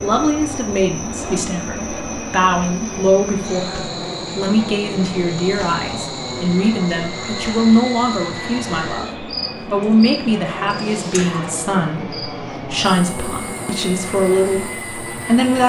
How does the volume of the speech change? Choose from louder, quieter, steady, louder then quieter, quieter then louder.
steady.